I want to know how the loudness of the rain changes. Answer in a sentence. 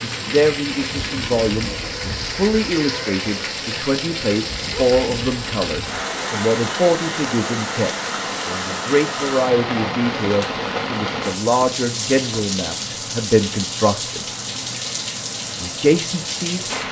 The loudness of the rain stays about the same.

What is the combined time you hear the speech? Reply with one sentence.
You can hear the speech for 15 seconds altogether.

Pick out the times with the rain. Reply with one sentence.
The rain can be heard from 0.0 to 16.8 s.